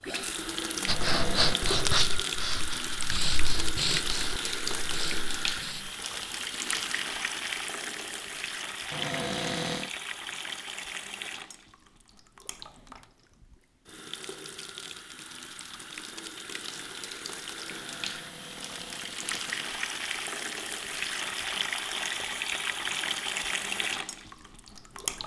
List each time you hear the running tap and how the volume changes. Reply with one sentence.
The running tap can be heard from 0.0 to 25.2 s, getting quieter then louder.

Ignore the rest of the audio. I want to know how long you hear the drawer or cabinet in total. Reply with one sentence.
The drawer or cabinet can be heard for 4 seconds in total.